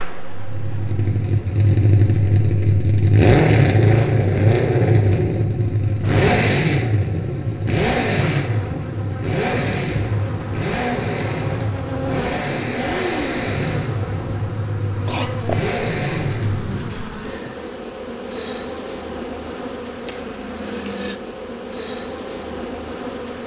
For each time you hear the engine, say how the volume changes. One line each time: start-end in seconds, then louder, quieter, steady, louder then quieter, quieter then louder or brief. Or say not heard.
0.2-16.9 quieter.